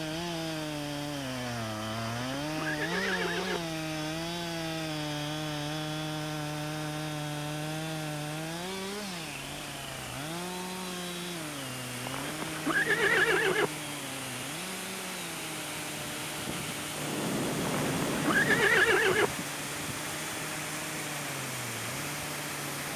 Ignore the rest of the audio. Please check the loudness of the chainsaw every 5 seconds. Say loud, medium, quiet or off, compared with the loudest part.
loud, loud, medium, medium, medium.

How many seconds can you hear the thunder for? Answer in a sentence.
The thunder can be heard for 2 seconds in total.